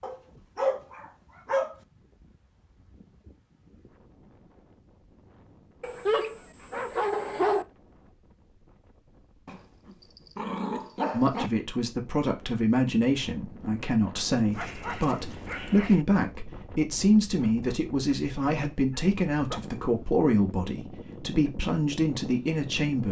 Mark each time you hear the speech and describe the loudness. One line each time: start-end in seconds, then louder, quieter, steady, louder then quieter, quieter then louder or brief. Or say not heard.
11.1-23.0 steady.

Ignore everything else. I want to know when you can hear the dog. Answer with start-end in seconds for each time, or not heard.
0.0-1.8, 5.8-7.7, 9.4-11.5, 14.5-16.1, 18.6-19.8.